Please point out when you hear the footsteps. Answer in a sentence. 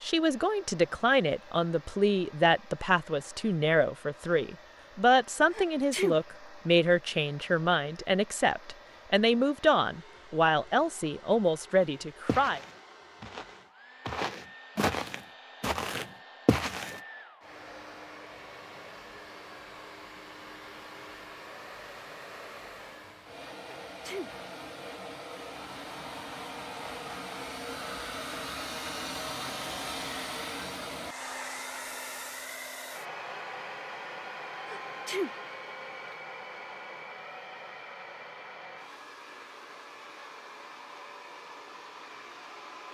You can hear the footsteps from 12.2 to 17.0 s.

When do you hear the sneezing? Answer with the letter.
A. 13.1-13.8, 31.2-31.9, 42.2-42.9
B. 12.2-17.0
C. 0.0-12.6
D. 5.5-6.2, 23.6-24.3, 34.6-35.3
D.